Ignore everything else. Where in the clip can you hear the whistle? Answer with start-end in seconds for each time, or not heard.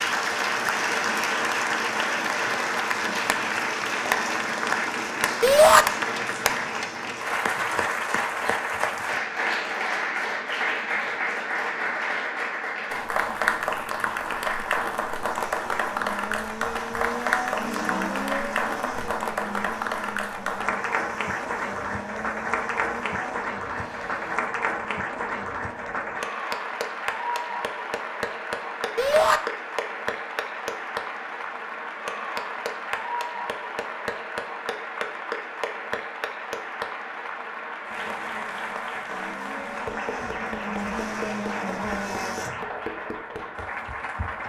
not heard.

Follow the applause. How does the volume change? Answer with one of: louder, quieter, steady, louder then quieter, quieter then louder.
quieter.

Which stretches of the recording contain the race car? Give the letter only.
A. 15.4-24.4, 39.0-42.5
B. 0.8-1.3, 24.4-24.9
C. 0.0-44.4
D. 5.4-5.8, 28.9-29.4
A.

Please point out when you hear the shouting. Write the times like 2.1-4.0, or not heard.
5.4-5.8, 28.9-29.4.